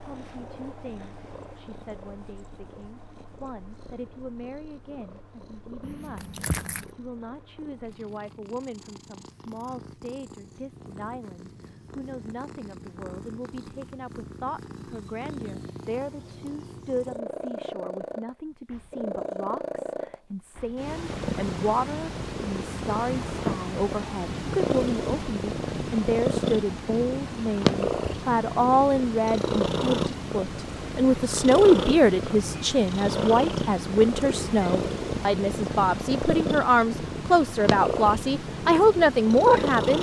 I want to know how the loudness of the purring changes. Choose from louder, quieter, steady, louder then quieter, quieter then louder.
louder.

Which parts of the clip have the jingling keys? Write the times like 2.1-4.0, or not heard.
5.8-6.9.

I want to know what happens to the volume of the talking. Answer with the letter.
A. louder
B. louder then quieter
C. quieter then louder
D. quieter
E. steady
A.